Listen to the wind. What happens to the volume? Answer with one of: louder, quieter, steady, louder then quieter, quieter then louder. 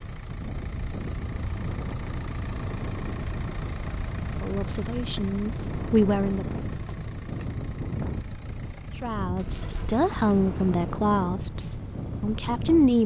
steady.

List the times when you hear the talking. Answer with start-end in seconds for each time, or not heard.
4.4-6.5, 9.0-13.0.